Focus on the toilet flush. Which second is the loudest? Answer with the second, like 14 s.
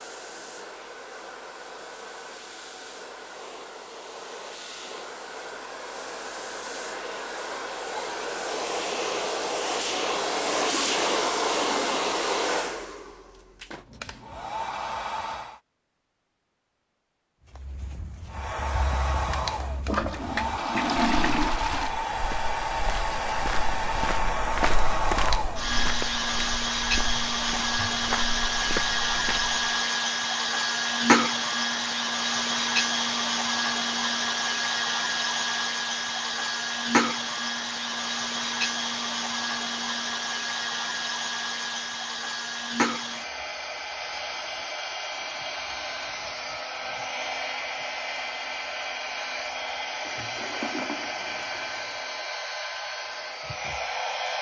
21 s.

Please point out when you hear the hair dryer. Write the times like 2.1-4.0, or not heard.
0.0-15.6, 18.2-54.3.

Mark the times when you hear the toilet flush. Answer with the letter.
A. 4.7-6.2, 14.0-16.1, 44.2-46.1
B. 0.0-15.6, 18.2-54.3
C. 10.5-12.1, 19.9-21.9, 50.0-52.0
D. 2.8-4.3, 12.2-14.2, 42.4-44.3
C.